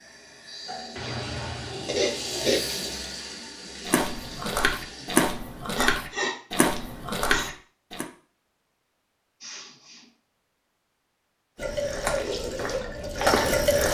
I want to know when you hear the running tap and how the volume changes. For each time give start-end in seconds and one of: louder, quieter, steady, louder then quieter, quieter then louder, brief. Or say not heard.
0.0-5.3 louder then quieter
11.6-13.8 brief.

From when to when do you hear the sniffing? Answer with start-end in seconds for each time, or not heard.
0.9-2.6, 5.7-7.5, 9.4-10.1.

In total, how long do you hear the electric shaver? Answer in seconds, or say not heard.
not heard.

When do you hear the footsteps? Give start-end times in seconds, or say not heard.
3.9-8.1, 11.7-13.8.